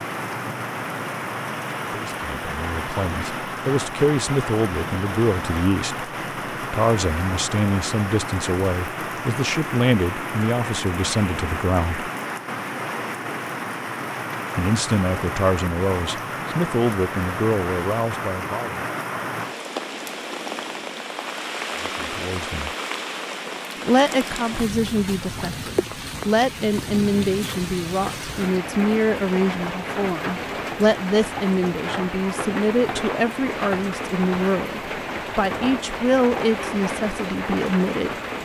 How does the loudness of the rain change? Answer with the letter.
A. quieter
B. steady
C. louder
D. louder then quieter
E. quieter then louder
B.